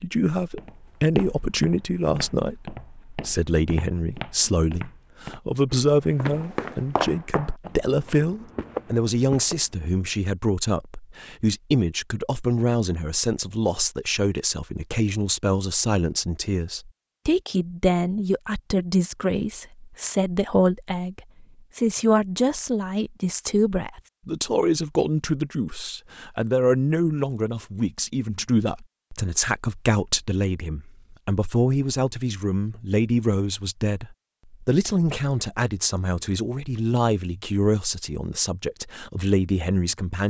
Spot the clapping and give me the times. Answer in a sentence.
You can't hear the clapping here.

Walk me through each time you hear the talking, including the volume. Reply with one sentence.
The talking can be heard from 0.0 to 40.2 s, at a steady volume.